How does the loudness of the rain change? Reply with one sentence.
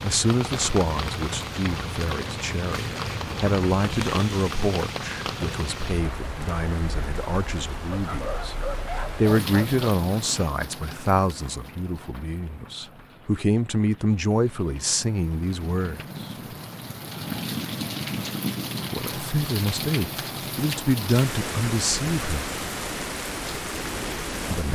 The loudness of the rain goes down, then up.